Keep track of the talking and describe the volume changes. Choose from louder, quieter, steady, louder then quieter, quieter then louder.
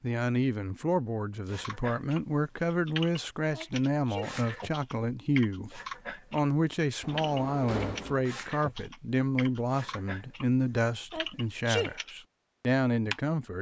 steady.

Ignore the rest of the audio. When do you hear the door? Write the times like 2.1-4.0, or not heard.
7.0-8.2.